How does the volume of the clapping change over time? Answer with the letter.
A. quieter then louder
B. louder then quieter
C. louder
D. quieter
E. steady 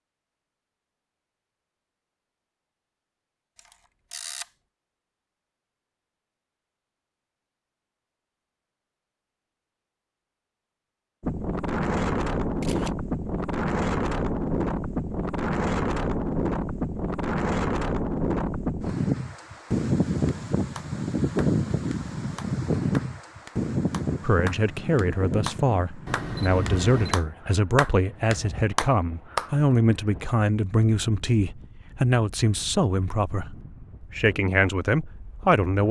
C.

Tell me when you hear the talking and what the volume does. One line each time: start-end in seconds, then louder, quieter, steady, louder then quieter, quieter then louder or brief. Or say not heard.
24.2-35.8 steady.